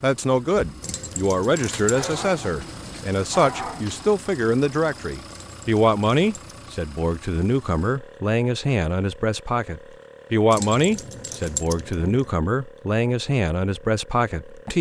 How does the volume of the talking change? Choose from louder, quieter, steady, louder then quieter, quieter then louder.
steady.